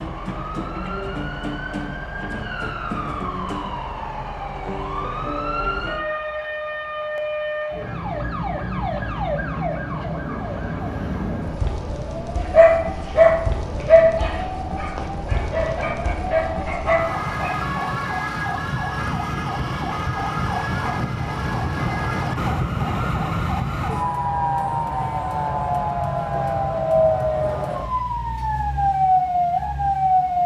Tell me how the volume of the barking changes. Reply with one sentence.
The volume of the barking goes down, then up.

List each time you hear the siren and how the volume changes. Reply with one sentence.
You can hear the siren from 0.0 to 30.4 s, getting louder.